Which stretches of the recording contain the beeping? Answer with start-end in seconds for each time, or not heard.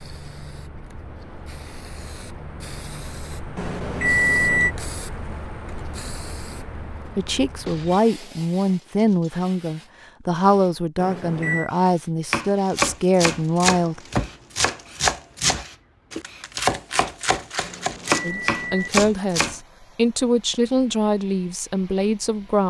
3.5-4.8, 10.9-11.7, 17.6-18.9.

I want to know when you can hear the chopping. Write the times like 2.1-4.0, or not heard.
12.3-19.6.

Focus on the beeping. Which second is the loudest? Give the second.
4 s.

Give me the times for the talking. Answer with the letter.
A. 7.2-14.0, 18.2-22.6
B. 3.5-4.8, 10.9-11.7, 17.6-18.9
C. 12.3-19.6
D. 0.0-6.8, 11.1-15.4
A.